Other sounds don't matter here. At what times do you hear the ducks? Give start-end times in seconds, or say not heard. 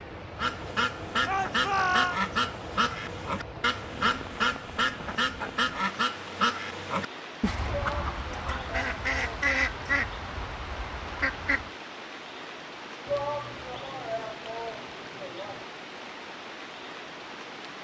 0.3-11.7.